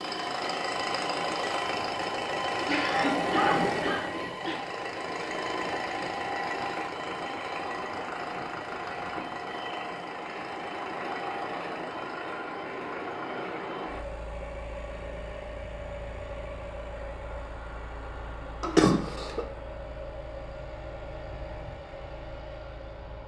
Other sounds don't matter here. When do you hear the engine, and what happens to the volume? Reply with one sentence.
The engine can be heard from 0.0 to 23.2 s, getting quieter.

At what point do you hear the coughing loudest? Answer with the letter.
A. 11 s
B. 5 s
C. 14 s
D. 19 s
D.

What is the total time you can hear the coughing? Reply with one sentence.
You can hear the coughing for 3 seconds altogether.